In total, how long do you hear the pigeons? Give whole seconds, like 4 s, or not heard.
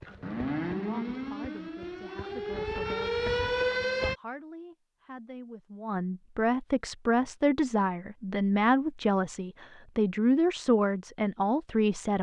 not heard.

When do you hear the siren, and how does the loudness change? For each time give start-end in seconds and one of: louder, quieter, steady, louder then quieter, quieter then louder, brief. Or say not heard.
0.0-4.2 quieter then louder.